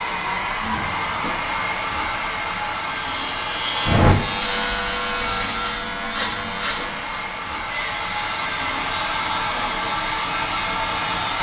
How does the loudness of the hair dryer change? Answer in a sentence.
The volume of the hair dryer goes down, then up.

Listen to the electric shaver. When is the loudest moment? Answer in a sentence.
The loudest moment of the electric shaver is at 4 seconds.